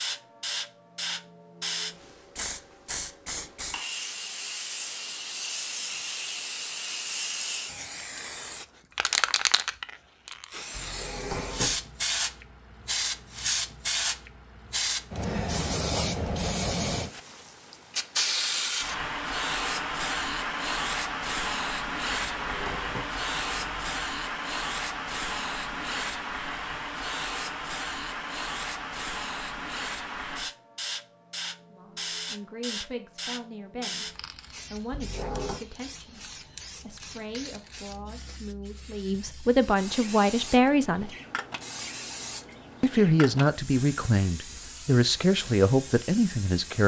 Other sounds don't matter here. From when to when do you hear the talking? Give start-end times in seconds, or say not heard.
31.7-41.1, 42.8-46.8.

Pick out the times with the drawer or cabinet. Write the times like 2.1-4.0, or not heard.
10.7-11.8, 22.1-24.0, 34.9-35.6.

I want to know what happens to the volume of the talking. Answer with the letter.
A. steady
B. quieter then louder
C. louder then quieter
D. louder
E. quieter
D.